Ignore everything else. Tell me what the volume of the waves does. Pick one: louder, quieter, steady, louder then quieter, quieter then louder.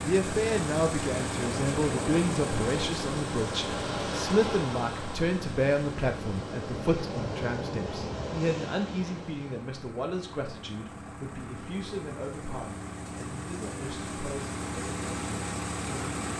steady.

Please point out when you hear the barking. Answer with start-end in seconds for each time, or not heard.
not heard.